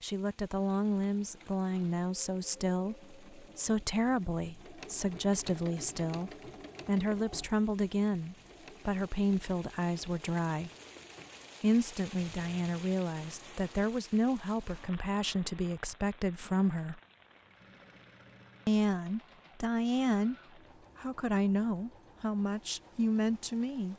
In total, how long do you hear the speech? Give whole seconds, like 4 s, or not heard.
21 s.